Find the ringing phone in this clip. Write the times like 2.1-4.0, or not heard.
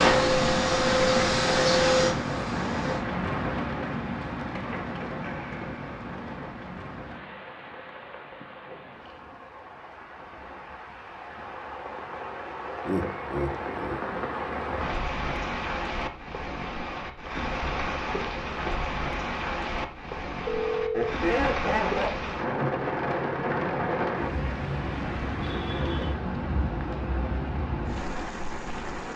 20.4-21.1.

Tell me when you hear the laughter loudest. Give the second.
21 s.